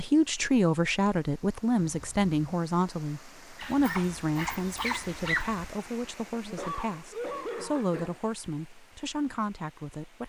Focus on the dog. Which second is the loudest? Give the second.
5 s.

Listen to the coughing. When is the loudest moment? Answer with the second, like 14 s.
7 s.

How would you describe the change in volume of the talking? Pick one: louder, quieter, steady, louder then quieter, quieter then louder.
quieter.